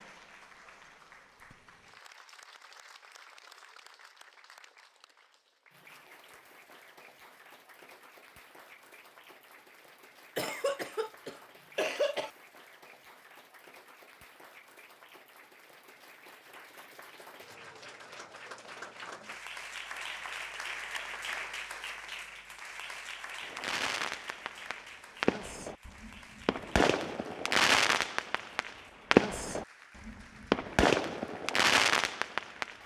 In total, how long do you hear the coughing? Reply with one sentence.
The coughing can be heard for 2 seconds in total.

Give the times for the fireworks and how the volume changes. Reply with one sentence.
The fireworks can be heard from 23.4 to 32.8 s, getting louder.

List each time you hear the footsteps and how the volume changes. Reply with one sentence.
You can't hear the footsteps here.